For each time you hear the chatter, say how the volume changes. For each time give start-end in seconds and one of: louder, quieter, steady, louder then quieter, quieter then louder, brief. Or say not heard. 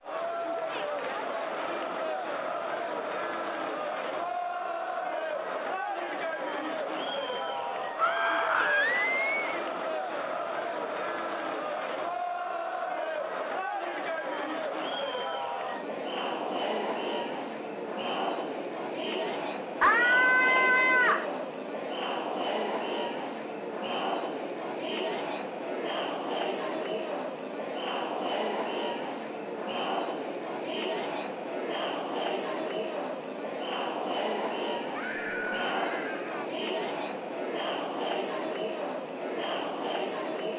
0.0-40.5 steady.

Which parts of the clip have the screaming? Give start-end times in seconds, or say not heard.
8.0-9.6, 19.8-21.2, 34.9-36.5.